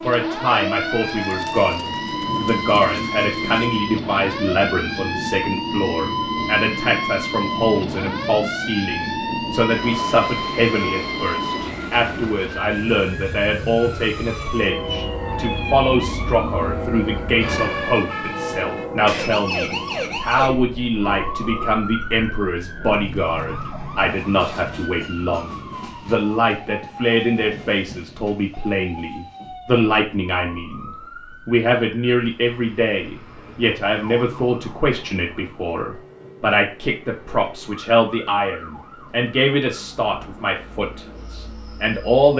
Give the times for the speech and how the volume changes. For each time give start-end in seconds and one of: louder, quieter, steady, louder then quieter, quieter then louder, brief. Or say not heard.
0.0-42.3 steady.